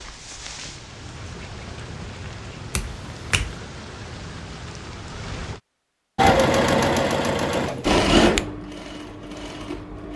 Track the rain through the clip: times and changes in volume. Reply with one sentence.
You can hear the rain from 0.0 to 5.6 s, at a steady volume.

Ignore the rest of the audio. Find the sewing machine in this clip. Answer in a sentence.
The sewing machine can be heard from 6.2 to 10.1 s.